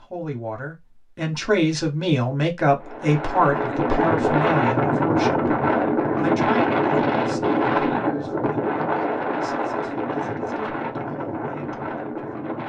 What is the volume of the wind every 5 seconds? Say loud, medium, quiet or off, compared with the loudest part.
loud, loud, medium.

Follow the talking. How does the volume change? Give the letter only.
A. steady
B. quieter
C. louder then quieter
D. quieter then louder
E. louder
B.